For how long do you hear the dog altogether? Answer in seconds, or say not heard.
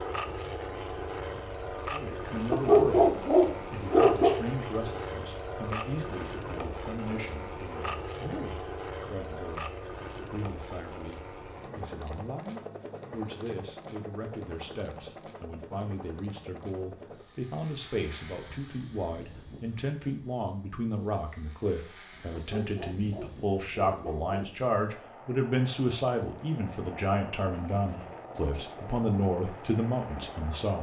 4 s.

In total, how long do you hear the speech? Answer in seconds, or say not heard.
29 s.